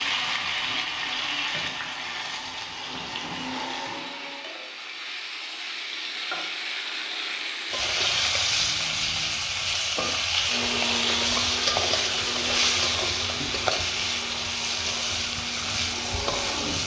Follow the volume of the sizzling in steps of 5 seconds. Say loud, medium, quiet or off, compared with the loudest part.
medium, loud, loud, loud.